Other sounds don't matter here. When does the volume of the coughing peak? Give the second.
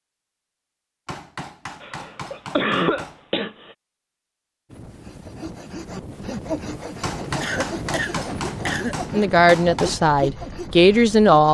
3 s.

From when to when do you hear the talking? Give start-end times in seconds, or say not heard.
9.1-11.4.